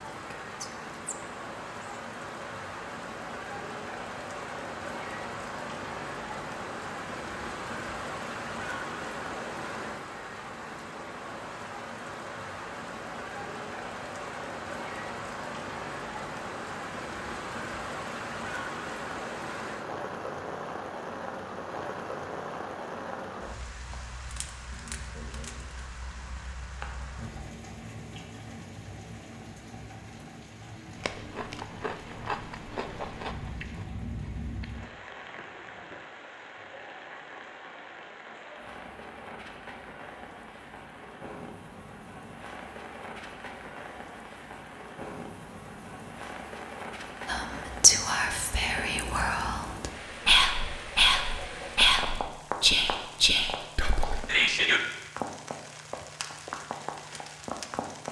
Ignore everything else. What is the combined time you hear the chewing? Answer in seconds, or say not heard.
5 s.